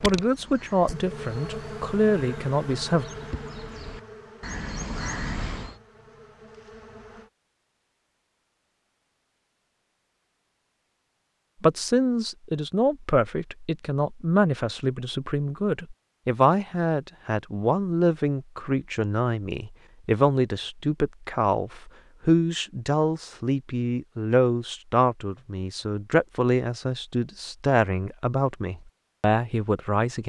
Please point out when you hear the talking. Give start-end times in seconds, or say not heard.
0.0-3.0, 11.6-30.2.